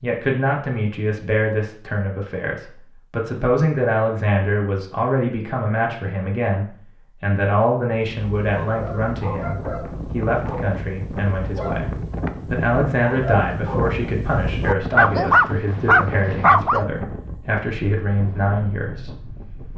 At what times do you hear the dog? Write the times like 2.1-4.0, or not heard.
8.1-16.9.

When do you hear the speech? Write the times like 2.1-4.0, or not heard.
0.0-19.1.